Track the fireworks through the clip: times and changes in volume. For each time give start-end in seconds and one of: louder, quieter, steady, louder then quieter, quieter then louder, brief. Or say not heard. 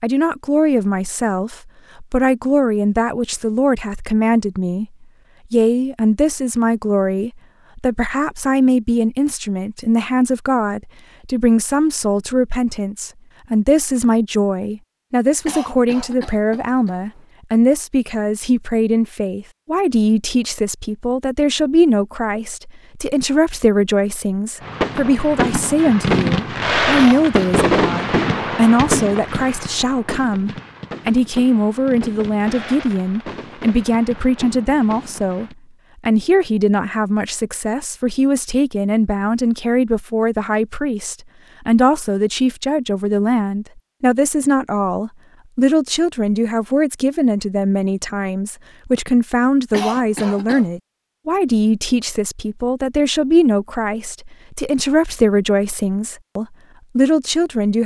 24.6-35.5 quieter.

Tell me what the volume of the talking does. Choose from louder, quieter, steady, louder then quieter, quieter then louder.
steady.